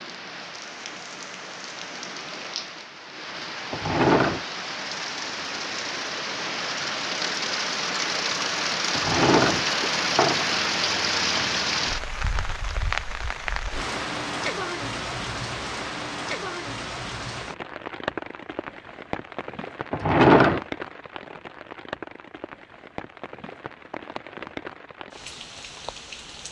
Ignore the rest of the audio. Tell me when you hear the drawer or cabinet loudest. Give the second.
20 s.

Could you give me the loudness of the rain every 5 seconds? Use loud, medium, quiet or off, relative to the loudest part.
medium, loud, loud, medium, medium, quiet.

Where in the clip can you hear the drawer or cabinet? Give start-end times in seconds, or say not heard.
3.7-4.5, 8.9-10.4, 19.9-20.6.